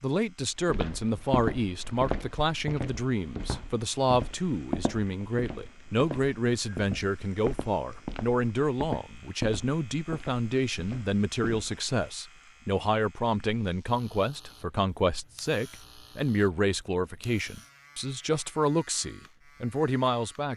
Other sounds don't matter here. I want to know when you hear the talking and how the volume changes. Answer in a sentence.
The talking can be heard from 0.0 to 20.5 s, at a steady volume.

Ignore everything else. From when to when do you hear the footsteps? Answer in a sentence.
You can hear the footsteps from 0.7 to 11.8 s.